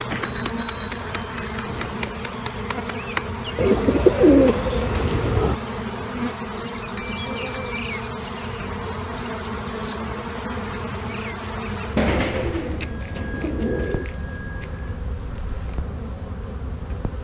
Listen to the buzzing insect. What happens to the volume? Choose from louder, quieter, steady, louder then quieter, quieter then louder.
quieter.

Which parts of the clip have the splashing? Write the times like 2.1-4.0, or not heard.
not heard.